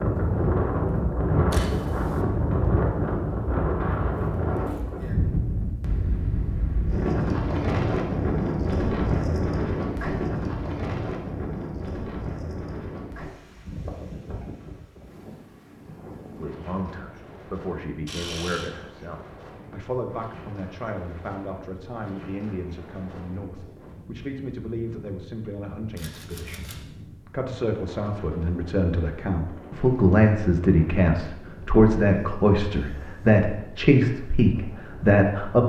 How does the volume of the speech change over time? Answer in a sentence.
The loudness of the speech goes up.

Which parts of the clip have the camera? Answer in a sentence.
You can hear the camera from 1.5 to 2.2 s, from 18.1 to 18.7 s and from 25.9 to 26.9 s.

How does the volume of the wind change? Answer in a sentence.
The loudness of the wind goes down.